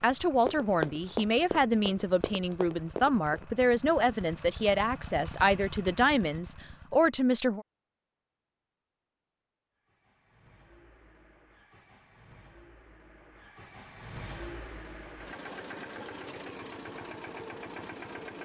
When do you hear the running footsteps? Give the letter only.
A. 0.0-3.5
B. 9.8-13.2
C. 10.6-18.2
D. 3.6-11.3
A.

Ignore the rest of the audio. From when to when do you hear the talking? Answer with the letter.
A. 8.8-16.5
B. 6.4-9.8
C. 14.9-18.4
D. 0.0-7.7
D.